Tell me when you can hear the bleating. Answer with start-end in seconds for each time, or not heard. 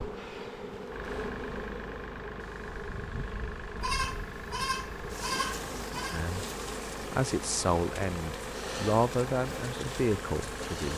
3.8-6.2.